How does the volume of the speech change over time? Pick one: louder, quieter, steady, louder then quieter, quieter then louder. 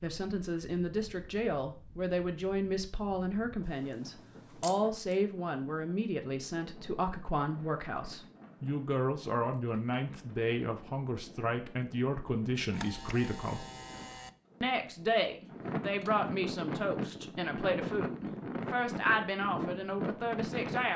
steady.